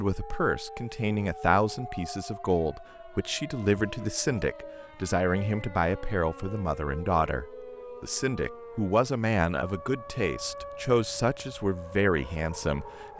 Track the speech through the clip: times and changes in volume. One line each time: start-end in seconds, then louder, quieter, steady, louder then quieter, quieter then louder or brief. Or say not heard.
0.0-13.1 steady.